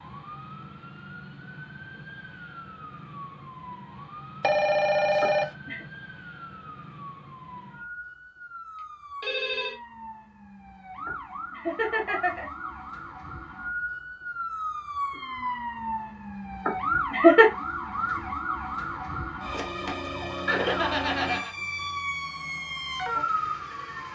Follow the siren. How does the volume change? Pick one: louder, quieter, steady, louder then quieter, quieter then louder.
louder.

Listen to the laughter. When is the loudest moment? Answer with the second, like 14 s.
17 s.